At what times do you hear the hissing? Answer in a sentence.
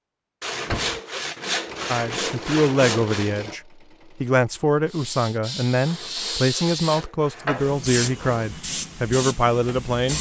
The hissing can be heard from 4.9 to 10.1 s.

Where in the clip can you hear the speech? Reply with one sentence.
You can hear the speech from 1.9 to 10.1 s.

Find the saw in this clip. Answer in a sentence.
You can hear the saw from 0.4 to 3.3 s and from 5.8 to 8.7 s.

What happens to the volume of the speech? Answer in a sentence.
The loudness of the speech stays about the same.